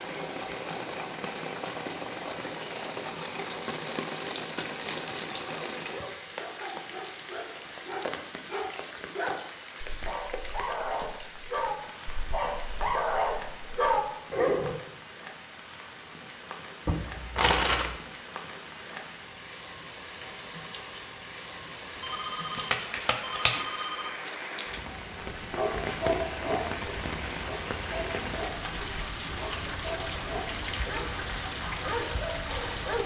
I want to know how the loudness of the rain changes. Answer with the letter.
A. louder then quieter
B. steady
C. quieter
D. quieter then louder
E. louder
D.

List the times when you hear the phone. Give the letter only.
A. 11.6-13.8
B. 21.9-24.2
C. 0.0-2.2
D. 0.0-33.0
B.